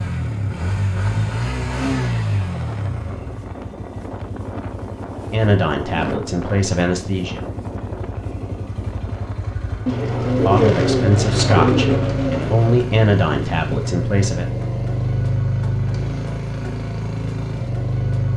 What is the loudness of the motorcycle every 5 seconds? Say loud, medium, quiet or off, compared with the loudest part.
loud, medium, loud, loud.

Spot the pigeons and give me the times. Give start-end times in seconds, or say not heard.
9.8-12.8.